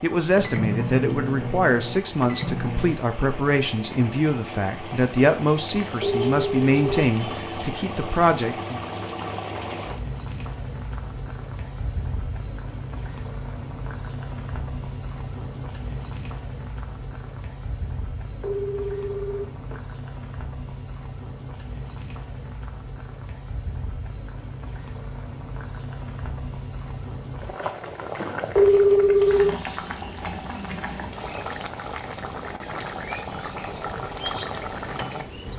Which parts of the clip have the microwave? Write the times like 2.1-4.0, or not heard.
0.2-3.0, 33.2-35.5.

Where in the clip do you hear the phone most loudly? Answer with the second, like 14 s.
29 s.